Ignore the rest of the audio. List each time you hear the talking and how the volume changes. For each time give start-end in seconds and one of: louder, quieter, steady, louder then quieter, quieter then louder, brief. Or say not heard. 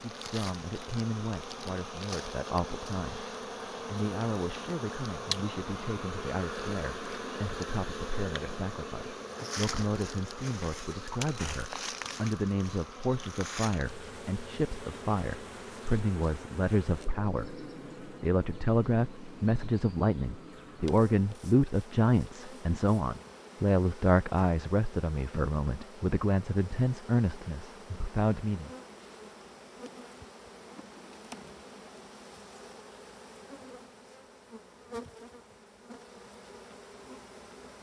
0.0-28.7 louder.